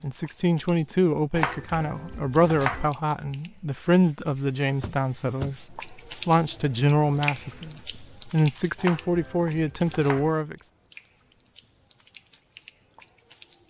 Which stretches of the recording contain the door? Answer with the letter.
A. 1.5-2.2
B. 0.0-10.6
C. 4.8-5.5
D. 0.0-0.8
C.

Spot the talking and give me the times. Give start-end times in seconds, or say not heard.
0.0-10.6.